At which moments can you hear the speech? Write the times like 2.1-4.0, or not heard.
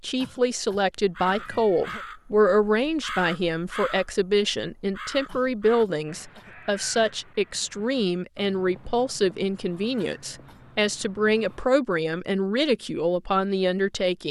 0.0-14.2.